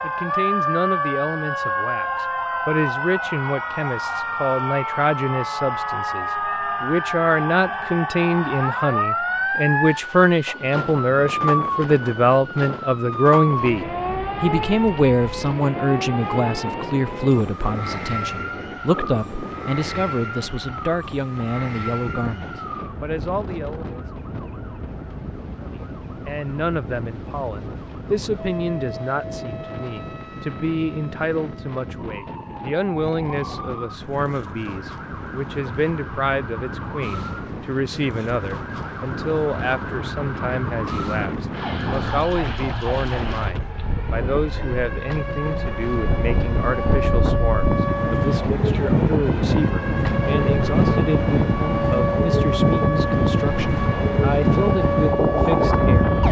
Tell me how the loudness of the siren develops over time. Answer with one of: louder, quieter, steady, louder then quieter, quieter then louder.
quieter then louder.